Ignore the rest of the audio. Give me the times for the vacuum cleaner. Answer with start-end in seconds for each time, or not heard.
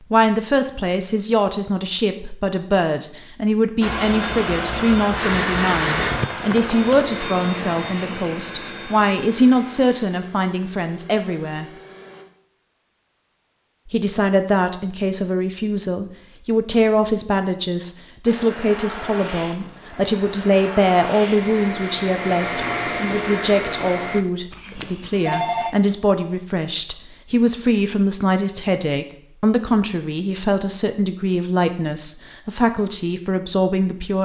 3.8-12.2, 18.2-24.2.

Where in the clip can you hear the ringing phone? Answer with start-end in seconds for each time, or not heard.
5.2-6.2, 24.5-25.8.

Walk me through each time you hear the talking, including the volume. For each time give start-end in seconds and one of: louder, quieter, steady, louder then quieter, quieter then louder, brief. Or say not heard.
0.1-11.7 steady
13.8-34.2 steady.